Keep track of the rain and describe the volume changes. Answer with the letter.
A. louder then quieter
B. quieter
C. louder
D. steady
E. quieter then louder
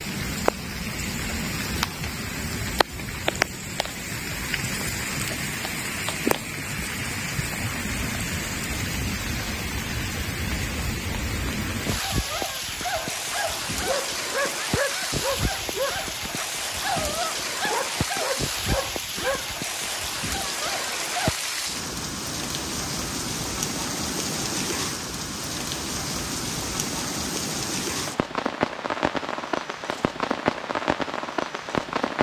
D.